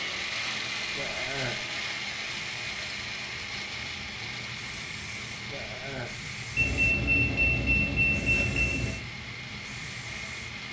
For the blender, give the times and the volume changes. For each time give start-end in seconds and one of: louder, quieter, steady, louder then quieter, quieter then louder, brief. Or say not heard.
0.0-10.6 quieter.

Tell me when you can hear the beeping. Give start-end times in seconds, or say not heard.
6.5-9.0.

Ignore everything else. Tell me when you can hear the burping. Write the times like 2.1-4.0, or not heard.
0.9-1.6, 5.5-6.2.